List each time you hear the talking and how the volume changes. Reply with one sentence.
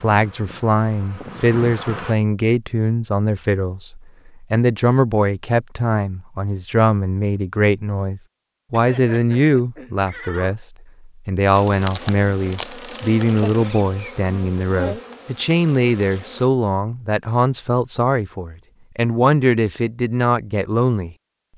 The talking can be heard from 0.0 to 21.1 s, at a steady volume.